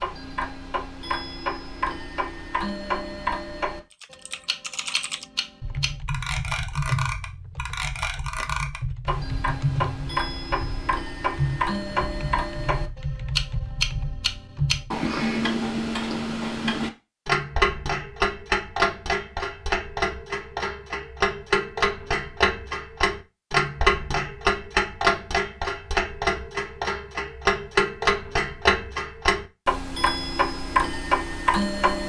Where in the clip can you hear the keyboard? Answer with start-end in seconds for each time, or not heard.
3.9-15.0.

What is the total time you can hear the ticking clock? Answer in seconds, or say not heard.
32 s.